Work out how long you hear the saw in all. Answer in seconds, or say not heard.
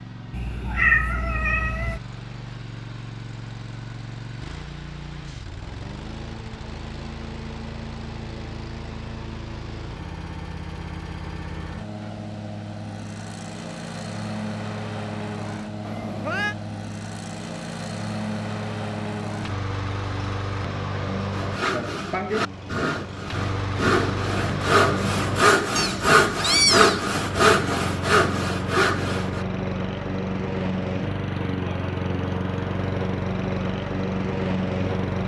8 s.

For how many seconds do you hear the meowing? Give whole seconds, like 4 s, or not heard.
4 s.